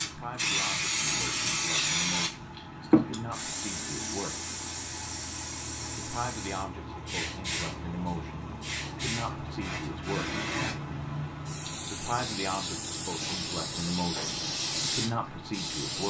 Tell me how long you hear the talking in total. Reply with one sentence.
You can hear the talking for 13 seconds altogether.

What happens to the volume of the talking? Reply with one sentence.
The loudness of the talking goes up.